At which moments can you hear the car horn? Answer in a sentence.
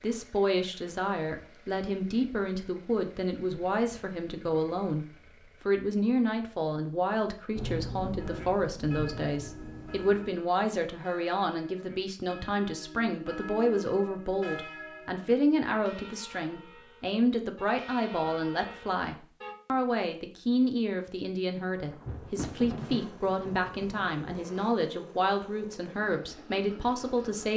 You can't hear the car horn here.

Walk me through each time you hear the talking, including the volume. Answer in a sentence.
You can hear the talking from 0.0 to 27.5 s, at a steady volume.